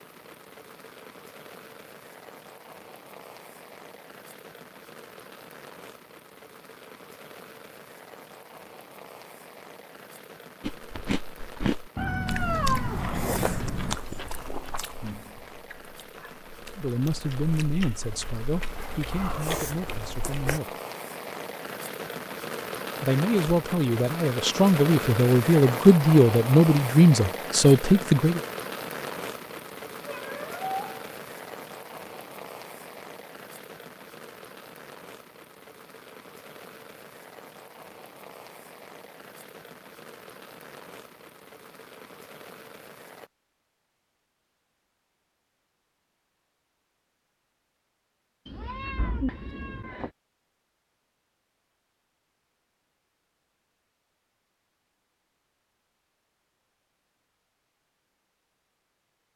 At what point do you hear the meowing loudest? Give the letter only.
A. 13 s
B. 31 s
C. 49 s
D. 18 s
A.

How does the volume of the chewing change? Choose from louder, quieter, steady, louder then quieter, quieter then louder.
quieter then louder.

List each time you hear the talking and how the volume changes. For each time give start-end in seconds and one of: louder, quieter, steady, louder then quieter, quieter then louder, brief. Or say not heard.
16.8-20.8 quieter
23.0-28.4 louder.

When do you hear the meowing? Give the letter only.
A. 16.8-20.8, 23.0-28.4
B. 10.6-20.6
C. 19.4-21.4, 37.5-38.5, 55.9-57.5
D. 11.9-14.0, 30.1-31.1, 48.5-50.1
D.